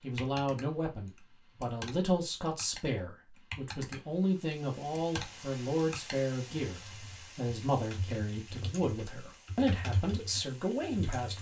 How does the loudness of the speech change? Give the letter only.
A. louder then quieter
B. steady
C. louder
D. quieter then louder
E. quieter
B.